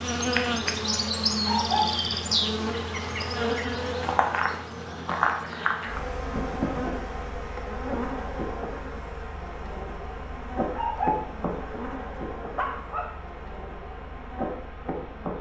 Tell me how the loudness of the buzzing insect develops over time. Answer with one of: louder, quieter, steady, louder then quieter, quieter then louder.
quieter.